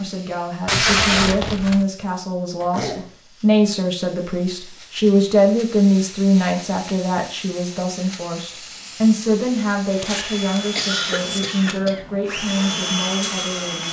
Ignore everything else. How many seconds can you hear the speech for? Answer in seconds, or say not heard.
14 s.